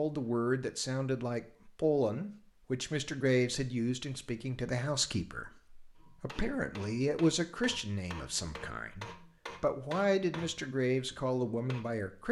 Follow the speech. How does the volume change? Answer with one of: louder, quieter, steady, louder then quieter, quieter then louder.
steady.